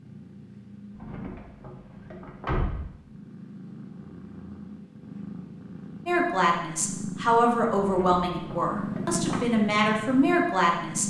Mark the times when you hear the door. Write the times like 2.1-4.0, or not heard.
0.9-2.8, 7.8-9.4.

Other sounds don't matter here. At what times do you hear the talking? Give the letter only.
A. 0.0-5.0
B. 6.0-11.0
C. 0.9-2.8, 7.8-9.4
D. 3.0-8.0
B.